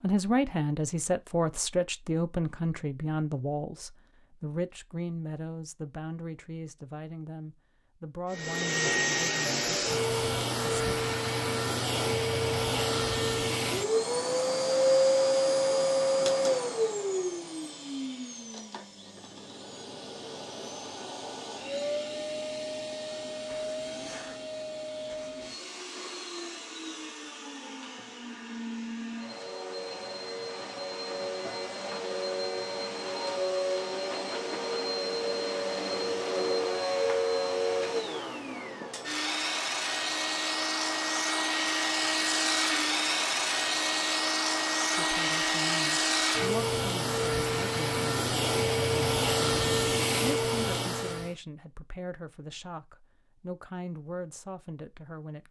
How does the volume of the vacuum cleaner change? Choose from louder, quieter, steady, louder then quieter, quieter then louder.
quieter then louder.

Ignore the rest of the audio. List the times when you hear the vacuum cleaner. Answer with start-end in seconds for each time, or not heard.
8.3-51.3.